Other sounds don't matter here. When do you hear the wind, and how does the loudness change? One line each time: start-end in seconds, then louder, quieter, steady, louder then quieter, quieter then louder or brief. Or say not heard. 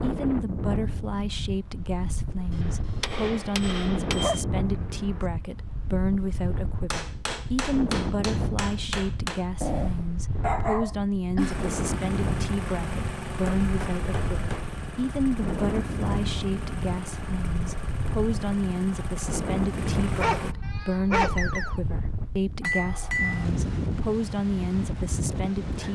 0.0-25.8 steady.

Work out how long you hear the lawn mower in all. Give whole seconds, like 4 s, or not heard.
9 s.